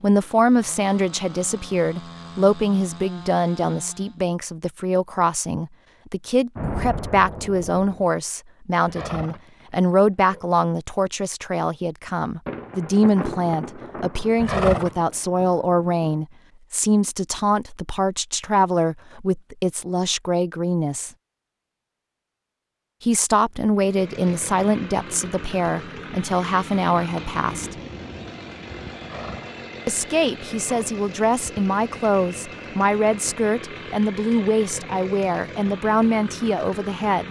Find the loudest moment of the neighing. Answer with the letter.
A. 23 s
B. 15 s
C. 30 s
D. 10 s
B.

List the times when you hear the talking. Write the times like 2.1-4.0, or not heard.
0.0-21.1, 23.0-27.7, 29.9-37.2.